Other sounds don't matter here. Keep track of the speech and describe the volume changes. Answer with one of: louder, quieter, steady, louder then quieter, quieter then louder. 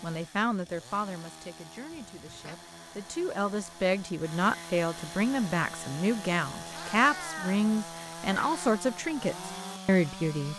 louder.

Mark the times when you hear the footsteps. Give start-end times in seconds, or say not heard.
not heard.